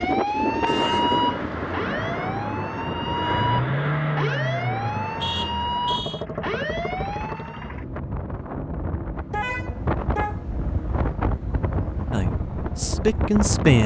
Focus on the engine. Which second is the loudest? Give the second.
4 s.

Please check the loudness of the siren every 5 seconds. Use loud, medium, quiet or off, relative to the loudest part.
loud, loud, off.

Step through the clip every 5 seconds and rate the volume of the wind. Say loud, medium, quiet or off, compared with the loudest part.
loud, medium, loud.